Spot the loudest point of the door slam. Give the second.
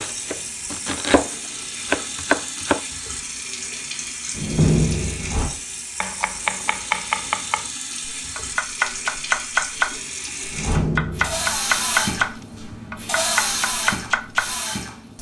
5 s.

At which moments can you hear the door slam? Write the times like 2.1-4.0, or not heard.
4.3-5.4, 10.5-11.6.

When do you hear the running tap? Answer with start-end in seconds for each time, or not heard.
0.0-15.1.